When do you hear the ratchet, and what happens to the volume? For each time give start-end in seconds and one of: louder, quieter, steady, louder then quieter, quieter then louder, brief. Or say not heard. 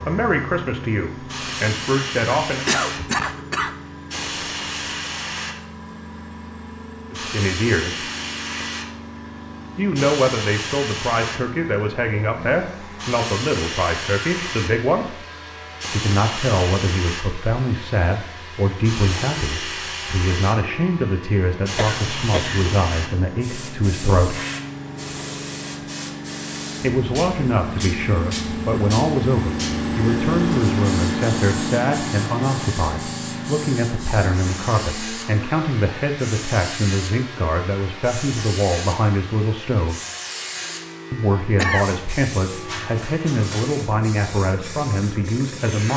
not heard.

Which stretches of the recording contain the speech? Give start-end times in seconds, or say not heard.
0.0-2.6, 7.1-8.1, 9.8-15.2, 15.9-24.4, 26.8-40.0, 41.1-45.9.